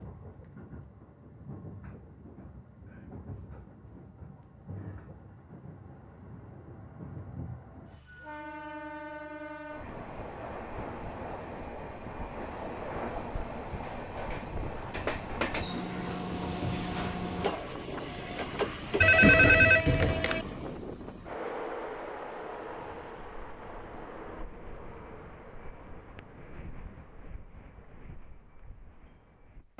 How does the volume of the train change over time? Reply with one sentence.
The loudness of the train goes up, then down.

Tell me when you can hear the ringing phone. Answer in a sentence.
The ringing phone can be heard from 19.0 to 20.4 s.